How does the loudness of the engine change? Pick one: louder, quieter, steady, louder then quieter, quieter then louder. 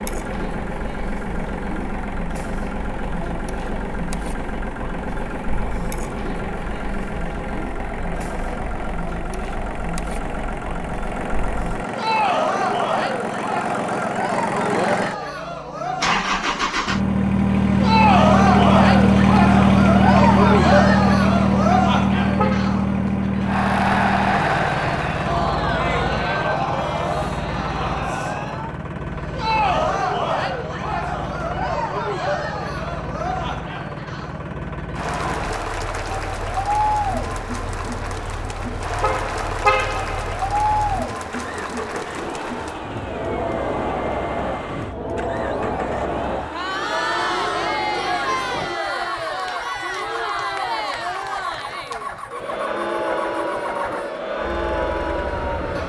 louder then quieter.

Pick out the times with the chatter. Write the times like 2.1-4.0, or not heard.
0.0-55.8.